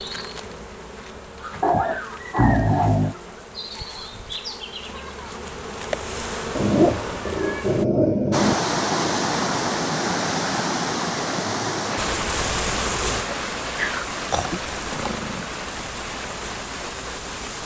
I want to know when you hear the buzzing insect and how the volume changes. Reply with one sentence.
You can hear the buzzing insect from 0.0 to 7.8 s, getting louder; and from 11.9 to 17.6 s, getting quieter.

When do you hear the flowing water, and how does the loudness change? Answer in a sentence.
The flowing water can be heard from 8.3 to 17.6 s, getting quieter.